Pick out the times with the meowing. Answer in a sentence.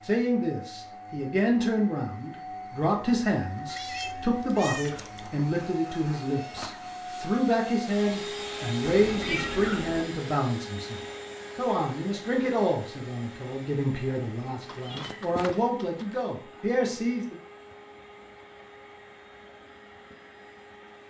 The meowing can be heard from 3.6 to 5.3 s, from 8.8 to 10.1 s and from 14.7 to 16.1 s.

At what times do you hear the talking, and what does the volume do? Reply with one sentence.
The talking can be heard from 0.0 to 17.4 s, at a steady volume.